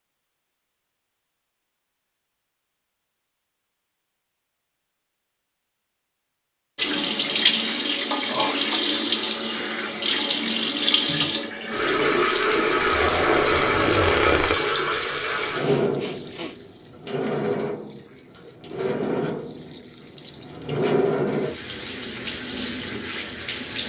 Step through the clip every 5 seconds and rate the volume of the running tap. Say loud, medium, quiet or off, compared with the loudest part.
off, loud, loud, medium, medium.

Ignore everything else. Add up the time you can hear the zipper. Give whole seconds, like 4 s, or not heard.
2 s.